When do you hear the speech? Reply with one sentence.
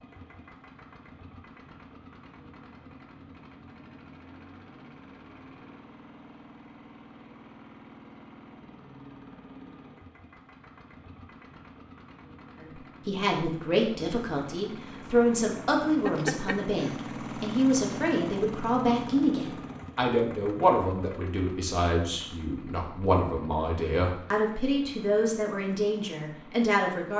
You can hear the speech from 12.6 to 27.1 s.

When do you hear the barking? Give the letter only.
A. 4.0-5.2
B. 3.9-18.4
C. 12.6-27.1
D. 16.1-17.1
D.